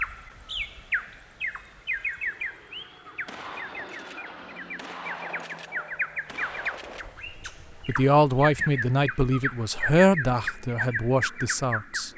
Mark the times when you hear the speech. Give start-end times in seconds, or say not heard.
7.8-12.1.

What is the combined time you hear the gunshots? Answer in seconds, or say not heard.
4 s.